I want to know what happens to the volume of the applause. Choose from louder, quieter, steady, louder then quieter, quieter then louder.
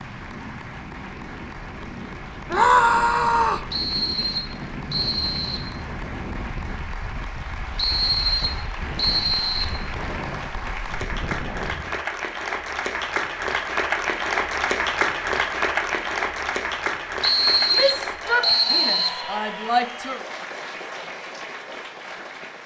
louder then quieter.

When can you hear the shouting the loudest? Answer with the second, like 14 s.
3 s.